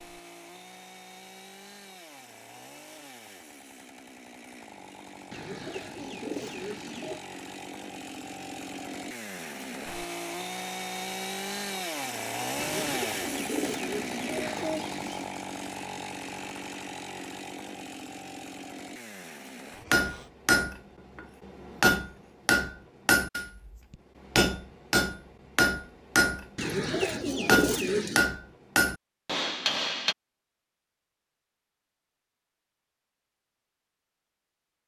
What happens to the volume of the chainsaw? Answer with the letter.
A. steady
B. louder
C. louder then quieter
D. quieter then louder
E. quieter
C.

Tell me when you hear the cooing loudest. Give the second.
28 s.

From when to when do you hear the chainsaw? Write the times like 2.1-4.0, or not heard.
0.0-20.3.